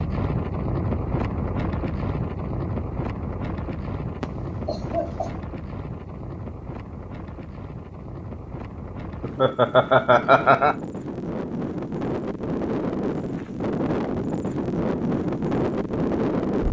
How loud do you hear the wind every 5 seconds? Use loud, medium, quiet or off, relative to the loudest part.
medium, quiet, loud, loud.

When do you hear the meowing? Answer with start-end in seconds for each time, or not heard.
not heard.